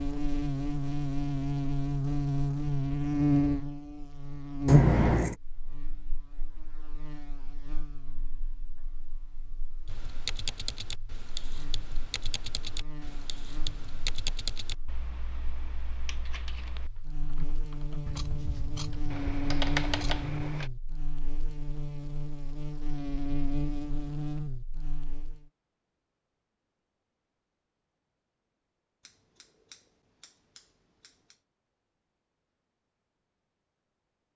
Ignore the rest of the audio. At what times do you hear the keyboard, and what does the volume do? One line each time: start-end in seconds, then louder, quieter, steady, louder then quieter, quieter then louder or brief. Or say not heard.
9.8-20.7 quieter then louder.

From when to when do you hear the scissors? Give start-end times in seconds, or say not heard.
4.7-5.3, 18.1-20.4, 29.1-31.4.